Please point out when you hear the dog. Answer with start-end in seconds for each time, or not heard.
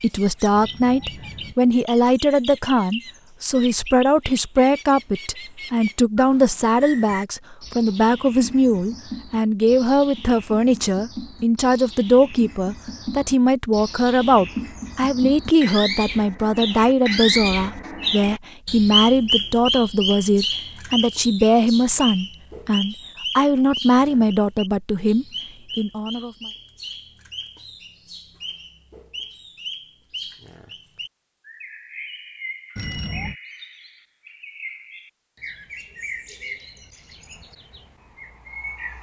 not heard.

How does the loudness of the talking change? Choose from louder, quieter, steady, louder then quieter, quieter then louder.
steady.